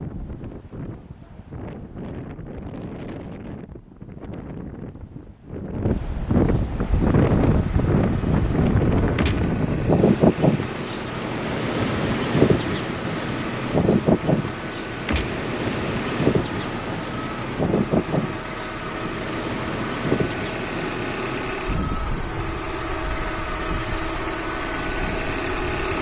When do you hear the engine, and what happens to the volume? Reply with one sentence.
You can hear the engine from 6.8 to 25.9 s, getting louder.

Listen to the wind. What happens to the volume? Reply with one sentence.
The loudness of the wind goes up, then down.